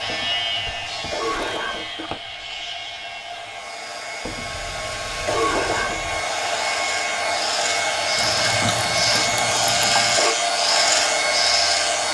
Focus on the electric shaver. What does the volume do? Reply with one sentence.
The volume of the electric shaver goes down, then up.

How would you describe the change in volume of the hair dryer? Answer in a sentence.
The loudness of the hair dryer goes up.